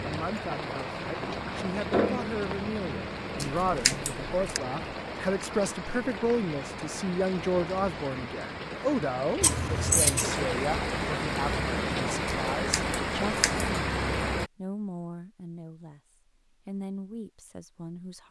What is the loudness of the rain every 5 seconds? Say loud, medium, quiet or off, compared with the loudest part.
loud, medium, loud, off.